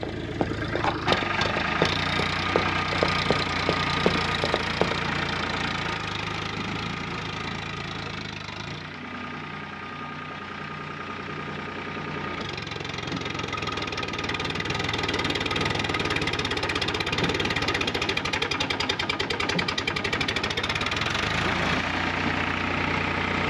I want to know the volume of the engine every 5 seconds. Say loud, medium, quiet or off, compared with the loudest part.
loud, medium, medium, loud, loud.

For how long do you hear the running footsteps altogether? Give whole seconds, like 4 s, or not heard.
5 s.